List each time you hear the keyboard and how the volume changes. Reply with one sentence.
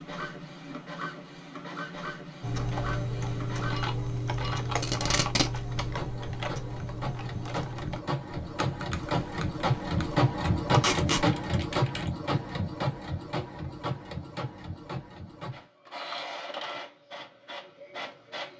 The keyboard can be heard from 2.4 to 12.2 s, getting quieter.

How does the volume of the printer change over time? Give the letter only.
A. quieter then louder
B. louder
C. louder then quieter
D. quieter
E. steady
C.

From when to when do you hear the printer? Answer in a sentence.
The printer can be heard from 0.0 to 18.5 s.